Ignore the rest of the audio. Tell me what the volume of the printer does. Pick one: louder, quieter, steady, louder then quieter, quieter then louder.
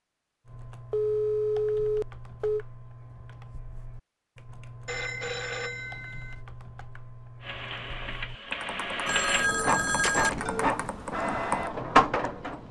louder.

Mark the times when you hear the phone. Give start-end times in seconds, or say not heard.
0.9-2.6, 4.8-6.3, 9.1-10.6.